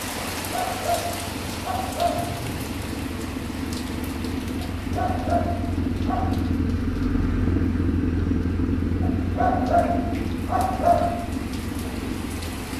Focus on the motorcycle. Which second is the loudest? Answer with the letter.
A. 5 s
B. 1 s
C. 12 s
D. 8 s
D.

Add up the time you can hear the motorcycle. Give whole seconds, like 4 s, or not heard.
13 s.